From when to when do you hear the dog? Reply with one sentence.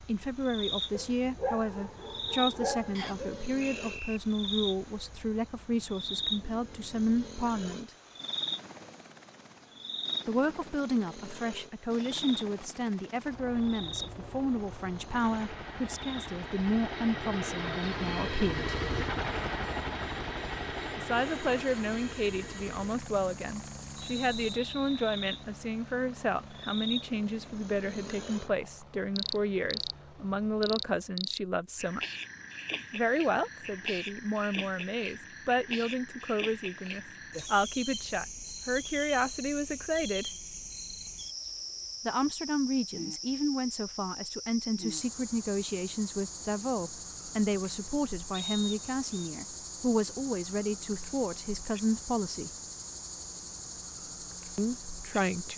The dog can be heard from 0.9 to 3.5 s.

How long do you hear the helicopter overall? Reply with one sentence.
You can hear the helicopter for 31 seconds altogether.